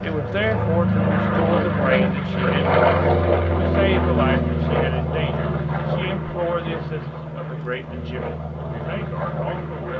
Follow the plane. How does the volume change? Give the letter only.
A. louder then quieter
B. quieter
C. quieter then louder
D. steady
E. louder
B.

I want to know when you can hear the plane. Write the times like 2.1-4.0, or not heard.
0.0-9.9.